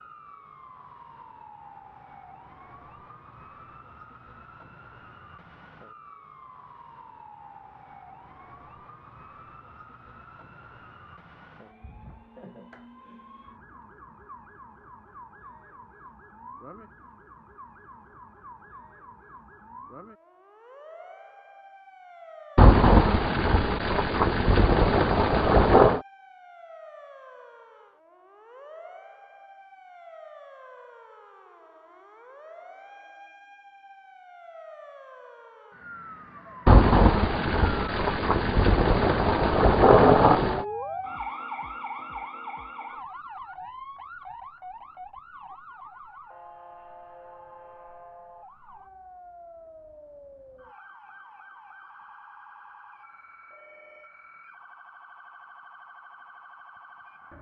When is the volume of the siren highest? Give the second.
41 s.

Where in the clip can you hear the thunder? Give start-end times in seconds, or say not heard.
22.6-26.0, 36.6-40.6.